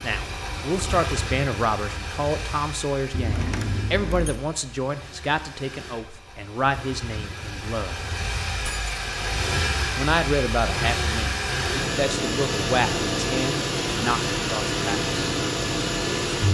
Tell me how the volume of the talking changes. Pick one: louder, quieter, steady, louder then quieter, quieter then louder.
steady.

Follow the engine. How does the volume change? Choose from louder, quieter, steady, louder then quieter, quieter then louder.
quieter then louder.